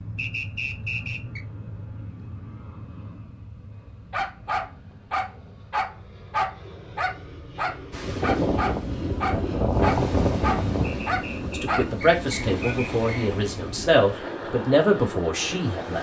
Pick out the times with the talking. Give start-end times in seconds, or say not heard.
11.5-15.9.